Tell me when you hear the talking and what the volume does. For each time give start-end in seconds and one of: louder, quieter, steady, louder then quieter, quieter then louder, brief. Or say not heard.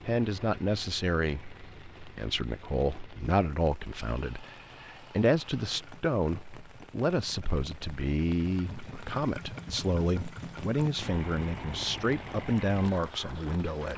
0.1-13.9 steady.